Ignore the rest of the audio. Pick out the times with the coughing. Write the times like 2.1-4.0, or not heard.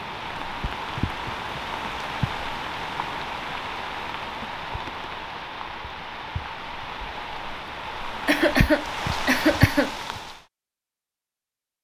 8.2-9.9.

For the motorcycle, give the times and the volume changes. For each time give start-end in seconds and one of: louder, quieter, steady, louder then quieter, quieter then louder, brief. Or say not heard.
not heard.